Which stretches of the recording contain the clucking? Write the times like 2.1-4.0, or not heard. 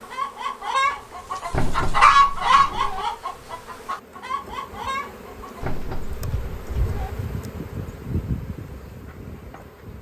0.0-5.7.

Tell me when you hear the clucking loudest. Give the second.
2 s.